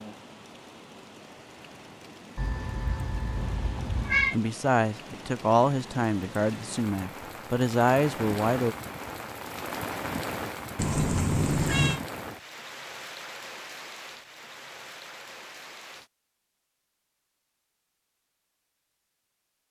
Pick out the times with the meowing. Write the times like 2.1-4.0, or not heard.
2.4-4.3, 10.8-12.0.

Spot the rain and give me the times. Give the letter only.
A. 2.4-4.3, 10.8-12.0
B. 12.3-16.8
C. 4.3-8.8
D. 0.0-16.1
D.